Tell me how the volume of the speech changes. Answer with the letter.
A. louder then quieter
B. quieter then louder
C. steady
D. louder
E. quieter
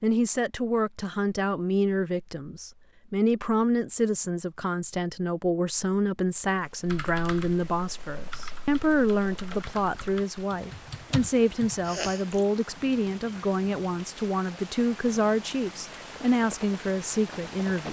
C.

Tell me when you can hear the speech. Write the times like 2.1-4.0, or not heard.
0.0-17.8.